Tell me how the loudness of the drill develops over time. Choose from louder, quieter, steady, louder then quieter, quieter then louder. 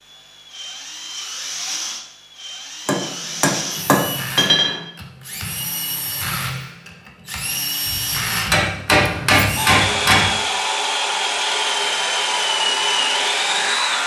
louder.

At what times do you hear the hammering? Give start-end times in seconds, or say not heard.
2.9-4.8, 8.5-10.4.